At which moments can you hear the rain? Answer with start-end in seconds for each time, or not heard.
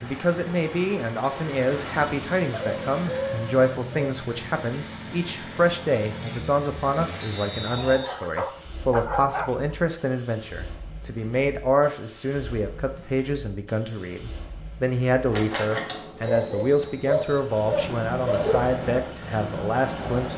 not heard.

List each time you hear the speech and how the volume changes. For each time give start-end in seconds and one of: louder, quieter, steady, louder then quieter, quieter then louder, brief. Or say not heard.
0.0-20.3 steady.